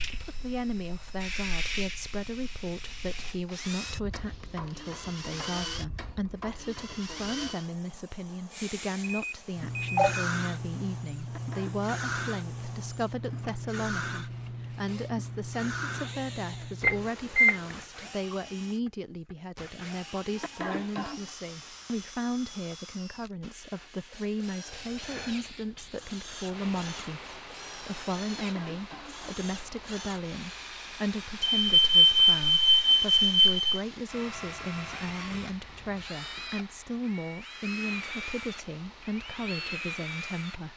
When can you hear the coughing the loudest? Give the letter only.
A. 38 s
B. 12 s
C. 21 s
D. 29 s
C.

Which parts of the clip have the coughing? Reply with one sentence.
The coughing can be heard from 11.2 to 11.9 s, from 20.4 to 21.3 s and from 28.4 to 29.4 s.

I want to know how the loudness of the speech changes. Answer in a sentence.
The volume of the speech stays about the same.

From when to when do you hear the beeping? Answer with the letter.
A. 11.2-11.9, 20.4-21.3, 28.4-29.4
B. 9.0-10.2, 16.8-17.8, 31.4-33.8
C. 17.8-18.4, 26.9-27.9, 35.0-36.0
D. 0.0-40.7
B.